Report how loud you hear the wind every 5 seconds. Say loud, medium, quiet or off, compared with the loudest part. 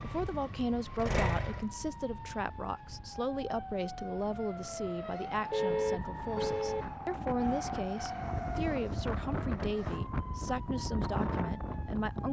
quiet, loud, loud.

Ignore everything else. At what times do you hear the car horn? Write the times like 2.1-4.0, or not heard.
5.5-6.8.